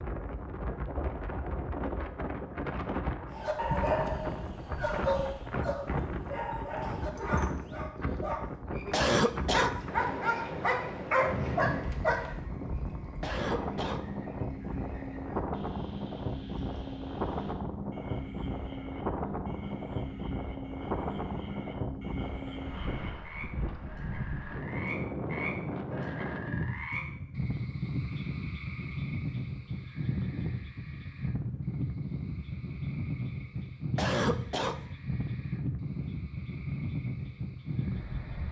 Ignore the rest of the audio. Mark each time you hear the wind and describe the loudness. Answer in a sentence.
You can hear the wind from 0.0 to 38.4 s, at a steady volume.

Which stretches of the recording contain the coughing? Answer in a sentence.
The coughing can be heard from 8.9 to 9.8 s, from 13.2 to 14.1 s and from 34.0 to 34.8 s.